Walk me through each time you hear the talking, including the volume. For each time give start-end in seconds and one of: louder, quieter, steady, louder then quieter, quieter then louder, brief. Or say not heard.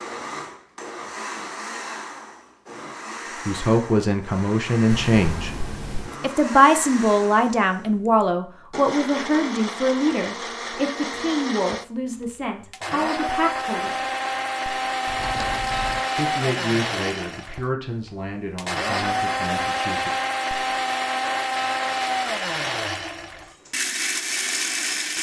3.5-5.5 brief
6.2-14.1 quieter
16.1-20.1 quieter.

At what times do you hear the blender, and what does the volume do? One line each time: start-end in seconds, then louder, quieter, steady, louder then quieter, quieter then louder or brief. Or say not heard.
0.0-25.1 louder.